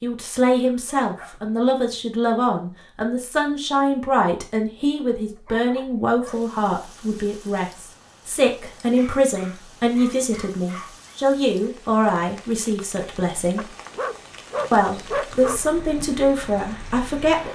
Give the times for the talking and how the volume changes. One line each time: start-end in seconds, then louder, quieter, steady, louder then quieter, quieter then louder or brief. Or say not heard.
0.0-13.7 steady
14.7-17.5 brief.